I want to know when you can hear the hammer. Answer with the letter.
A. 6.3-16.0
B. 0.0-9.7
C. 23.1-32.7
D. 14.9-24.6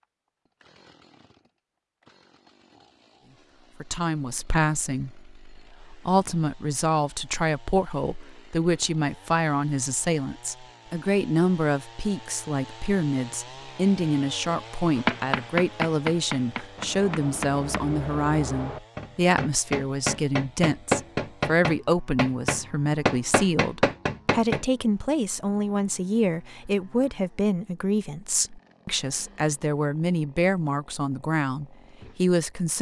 D.